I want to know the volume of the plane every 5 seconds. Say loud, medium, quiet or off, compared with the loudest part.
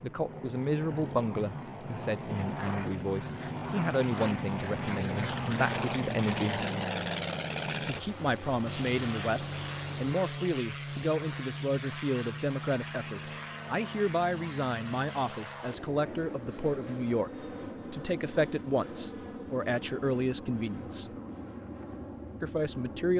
loud, loud, medium, medium, medium.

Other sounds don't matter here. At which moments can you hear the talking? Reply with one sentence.
You can hear the talking from 0.0 to 6.7 s, from 7.8 to 21.1 s and from 22.4 to 23.1 s.